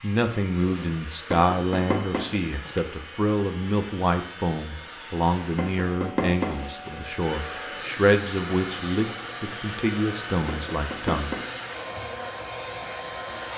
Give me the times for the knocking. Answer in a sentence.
The knocking can be heard from 1.3 to 2.8 s, from 5.5 to 7.1 s and from 10.4 to 11.4 s.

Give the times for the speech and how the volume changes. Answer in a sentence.
You can hear the speech from 0.0 to 11.5 s, at a steady volume.